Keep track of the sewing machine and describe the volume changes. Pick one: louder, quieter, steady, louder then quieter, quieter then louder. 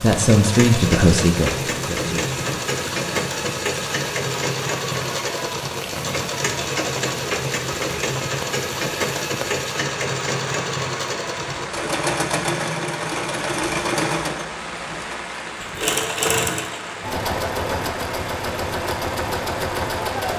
steady.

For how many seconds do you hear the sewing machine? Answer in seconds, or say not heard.
20 s.